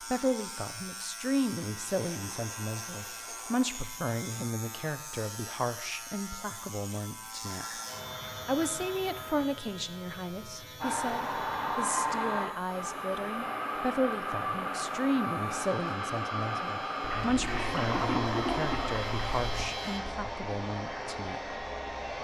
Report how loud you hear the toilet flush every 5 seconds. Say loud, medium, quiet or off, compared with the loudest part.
quiet, quiet, off, loud, off.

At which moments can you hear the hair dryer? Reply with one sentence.
The hair dryer can be heard from 10.8 to 22.2 s.